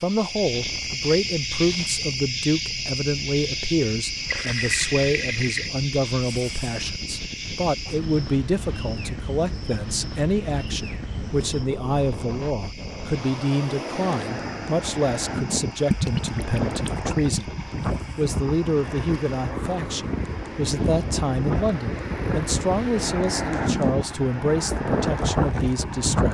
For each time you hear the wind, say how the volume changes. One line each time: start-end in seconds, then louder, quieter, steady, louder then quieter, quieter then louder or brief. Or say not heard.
0.1-26.3 louder.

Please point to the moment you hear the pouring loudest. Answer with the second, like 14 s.
16 s.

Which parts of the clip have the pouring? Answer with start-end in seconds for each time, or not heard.
4.2-5.7, 15.8-17.6.